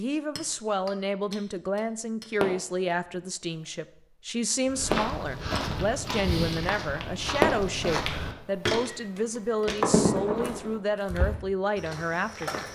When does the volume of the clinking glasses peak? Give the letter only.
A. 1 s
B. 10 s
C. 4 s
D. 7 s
B.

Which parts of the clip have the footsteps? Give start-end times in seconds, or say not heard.
4.7-12.7.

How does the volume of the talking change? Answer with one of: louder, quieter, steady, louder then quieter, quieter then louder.
steady.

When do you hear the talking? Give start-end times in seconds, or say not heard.
0.0-12.7.